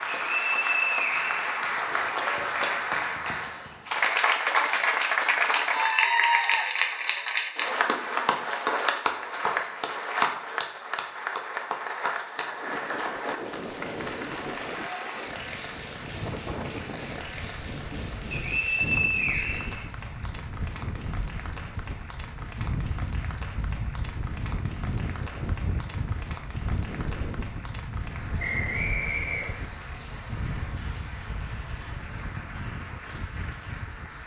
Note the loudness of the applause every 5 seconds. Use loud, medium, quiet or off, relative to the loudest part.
loud, loud, medium, quiet, quiet, quiet, quiet.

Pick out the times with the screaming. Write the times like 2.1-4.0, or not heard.
not heard.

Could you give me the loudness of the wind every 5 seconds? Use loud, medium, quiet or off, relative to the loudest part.
off, off, loud, loud, loud, loud, loud.